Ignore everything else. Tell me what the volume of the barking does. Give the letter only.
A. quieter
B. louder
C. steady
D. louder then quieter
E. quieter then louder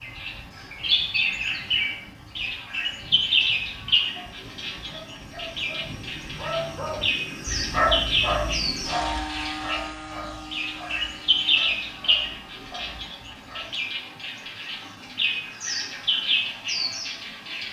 D.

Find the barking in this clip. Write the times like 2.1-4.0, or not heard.
4.1-13.7.